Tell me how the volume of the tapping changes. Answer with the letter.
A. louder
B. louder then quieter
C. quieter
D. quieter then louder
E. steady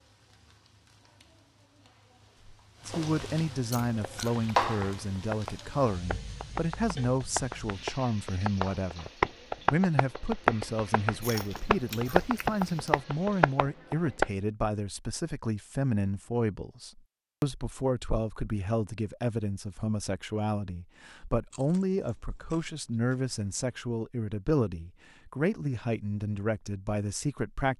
A.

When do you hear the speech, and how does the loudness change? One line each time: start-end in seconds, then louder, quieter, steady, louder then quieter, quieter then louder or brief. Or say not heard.
2.9-27.7 steady.